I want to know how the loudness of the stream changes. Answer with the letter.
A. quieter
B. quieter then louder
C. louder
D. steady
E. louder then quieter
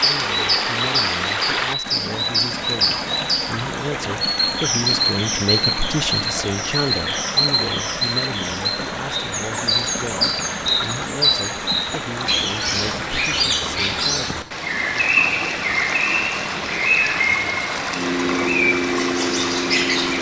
D.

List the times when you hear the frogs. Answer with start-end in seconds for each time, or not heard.
not heard.